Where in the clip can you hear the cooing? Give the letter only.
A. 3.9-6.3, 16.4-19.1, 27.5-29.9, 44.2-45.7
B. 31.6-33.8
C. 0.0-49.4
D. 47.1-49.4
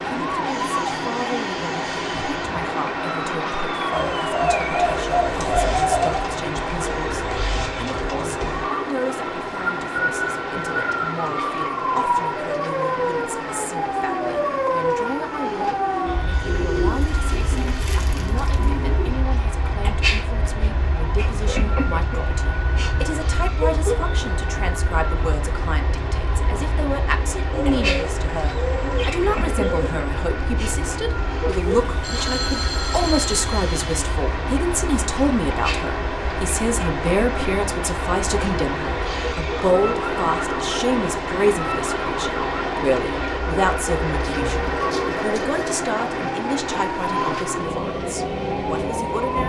A.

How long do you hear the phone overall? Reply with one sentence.
You can hear the phone for 2 seconds altogether.